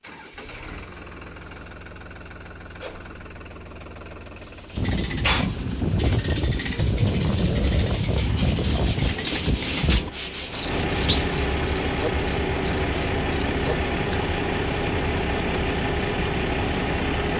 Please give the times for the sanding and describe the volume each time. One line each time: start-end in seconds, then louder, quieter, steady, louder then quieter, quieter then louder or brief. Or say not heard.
4.2-11.7 louder.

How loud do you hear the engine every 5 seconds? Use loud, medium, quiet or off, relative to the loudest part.
quiet, quiet, loud, loud.